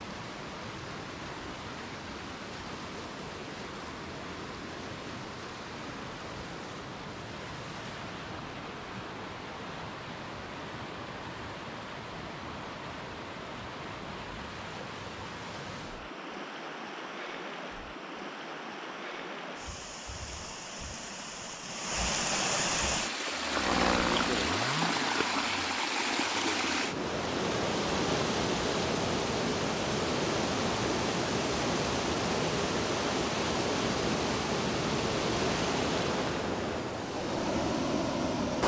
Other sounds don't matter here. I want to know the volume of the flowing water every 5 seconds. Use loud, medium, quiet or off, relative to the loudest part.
medium, medium, medium, medium, loud, loud, loud, loud.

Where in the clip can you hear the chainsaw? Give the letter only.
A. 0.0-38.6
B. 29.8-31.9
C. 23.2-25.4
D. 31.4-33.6
C.